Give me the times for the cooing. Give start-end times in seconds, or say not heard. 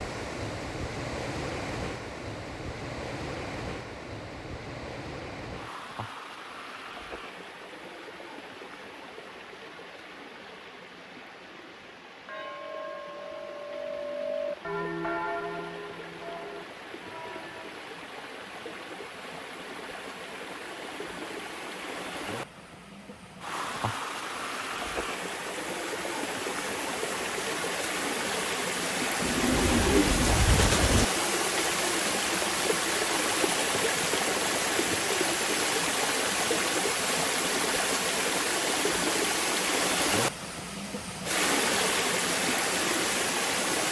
29.2-31.1.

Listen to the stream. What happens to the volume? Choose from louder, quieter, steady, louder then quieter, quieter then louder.
quieter then louder.